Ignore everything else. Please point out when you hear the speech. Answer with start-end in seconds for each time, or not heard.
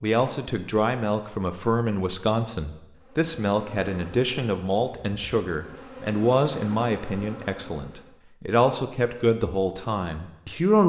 0.0-10.8.